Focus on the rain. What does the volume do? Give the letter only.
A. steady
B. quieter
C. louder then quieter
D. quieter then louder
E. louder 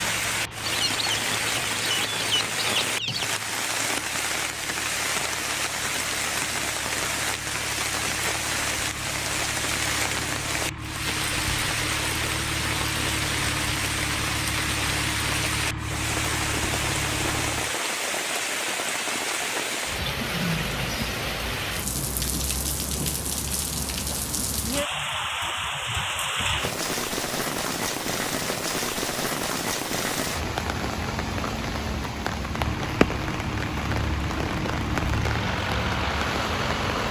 A.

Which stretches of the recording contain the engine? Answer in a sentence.
The engine can be heard from 0.0 to 17.8 s and from 32.5 to 37.0 s.